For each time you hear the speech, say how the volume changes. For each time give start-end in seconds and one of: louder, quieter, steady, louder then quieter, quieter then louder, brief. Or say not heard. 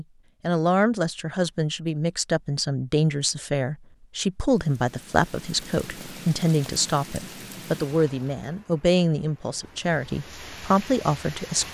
0.0-11.6 steady.